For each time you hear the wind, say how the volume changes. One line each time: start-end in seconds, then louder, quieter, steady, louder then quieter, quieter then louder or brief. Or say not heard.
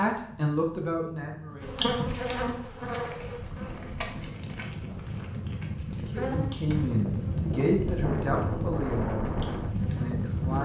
0.0-10.6 louder.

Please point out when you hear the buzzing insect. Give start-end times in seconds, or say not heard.
1.6-10.6.